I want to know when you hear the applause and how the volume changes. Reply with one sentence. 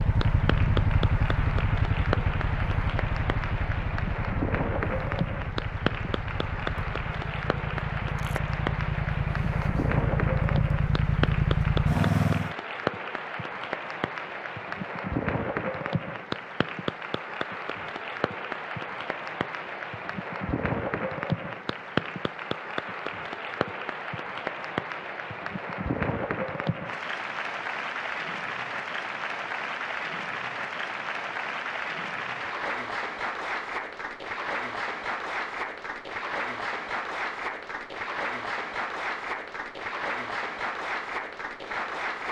The applause can be heard from 0.0 to 42.2 s, at a steady volume.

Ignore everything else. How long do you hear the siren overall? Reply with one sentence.
The siren can't be heard in this clip.